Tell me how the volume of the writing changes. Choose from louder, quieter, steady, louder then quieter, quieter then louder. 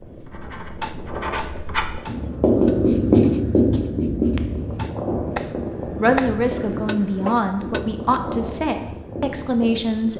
louder then quieter.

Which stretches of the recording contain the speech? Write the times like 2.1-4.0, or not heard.
6.0-10.1.